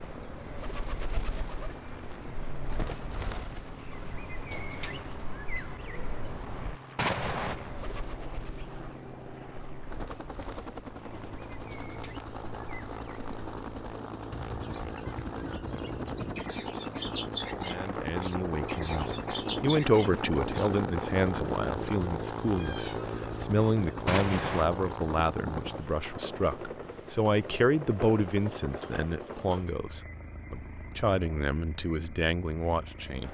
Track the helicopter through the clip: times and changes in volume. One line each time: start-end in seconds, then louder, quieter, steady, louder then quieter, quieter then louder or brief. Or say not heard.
0.0-33.2 louder then quieter.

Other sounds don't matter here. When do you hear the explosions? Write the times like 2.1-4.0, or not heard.
7.0-7.5, 24.1-24.6.